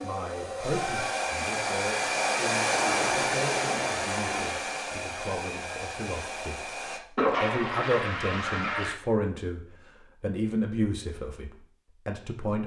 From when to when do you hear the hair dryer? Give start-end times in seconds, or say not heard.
0.0-7.0.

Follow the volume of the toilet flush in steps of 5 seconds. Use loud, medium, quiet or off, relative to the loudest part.
medium, loud, off.